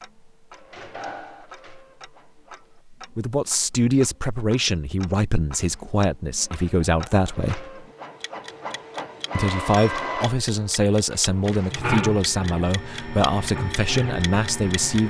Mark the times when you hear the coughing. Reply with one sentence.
The coughing can't be heard in this clip.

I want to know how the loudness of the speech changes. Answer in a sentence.
The volume of the speech stays about the same.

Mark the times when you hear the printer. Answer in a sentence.
The printer can be heard from 0.0 to 2.9 s and from 5.5 to 15.0 s.